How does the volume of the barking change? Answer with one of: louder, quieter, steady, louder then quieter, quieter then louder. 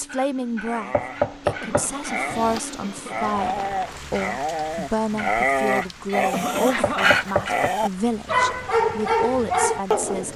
louder.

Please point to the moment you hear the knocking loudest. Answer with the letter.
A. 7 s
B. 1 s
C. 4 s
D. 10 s
B.